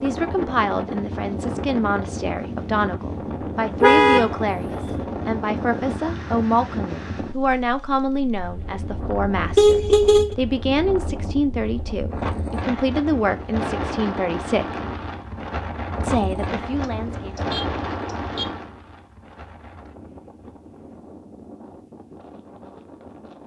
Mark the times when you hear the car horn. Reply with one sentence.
You can hear the car horn from 3.8 to 5.0 s, from 9.6 to 10.3 s and from 16.8 to 18.4 s.